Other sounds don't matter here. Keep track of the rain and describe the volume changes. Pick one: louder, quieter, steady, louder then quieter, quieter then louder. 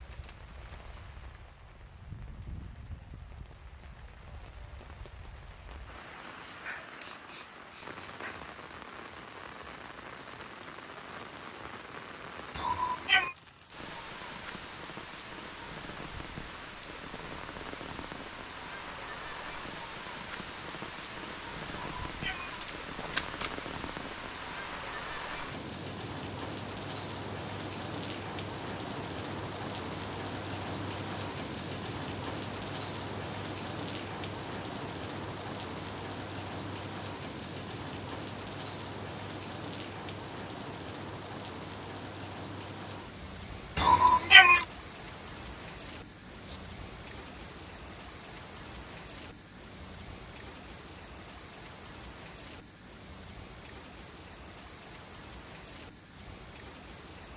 louder then quieter.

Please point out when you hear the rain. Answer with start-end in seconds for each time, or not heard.
0.0-57.3.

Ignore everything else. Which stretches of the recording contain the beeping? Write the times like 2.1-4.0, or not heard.
not heard.